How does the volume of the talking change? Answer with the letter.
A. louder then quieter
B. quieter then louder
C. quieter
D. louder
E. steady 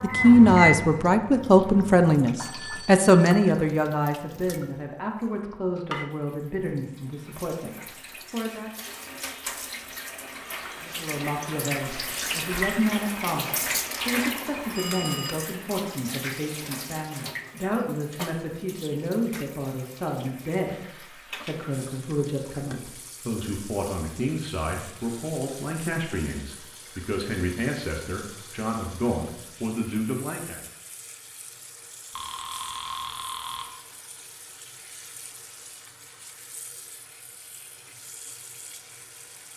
C.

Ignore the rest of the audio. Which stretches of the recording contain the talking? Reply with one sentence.
The talking can be heard from 0.0 to 8.7 s and from 10.8 to 30.6 s.